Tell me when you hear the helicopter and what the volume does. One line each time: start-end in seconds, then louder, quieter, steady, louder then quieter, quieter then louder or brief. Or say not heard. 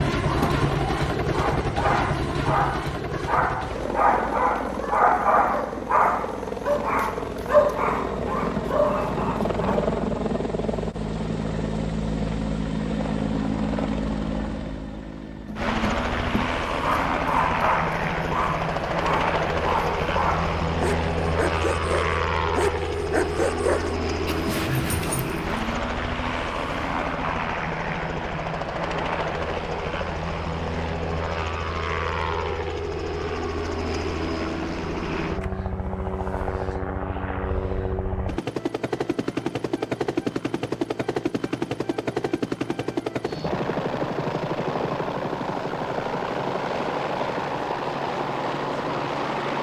0.0-49.5 steady.